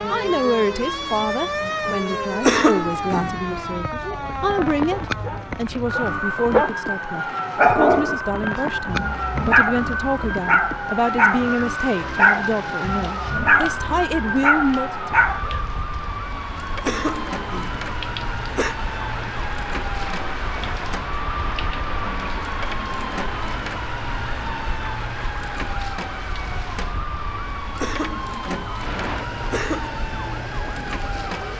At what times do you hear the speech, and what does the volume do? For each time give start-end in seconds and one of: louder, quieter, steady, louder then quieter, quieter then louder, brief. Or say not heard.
0.1-15.2 steady.